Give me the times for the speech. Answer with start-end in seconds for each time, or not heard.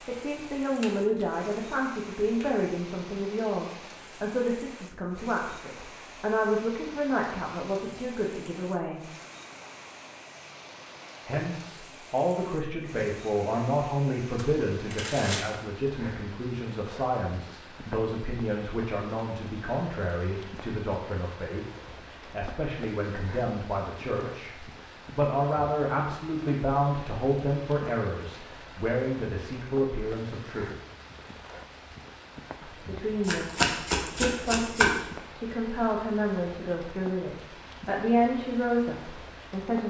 0.1-9.0, 11.2-30.7, 32.6-39.8.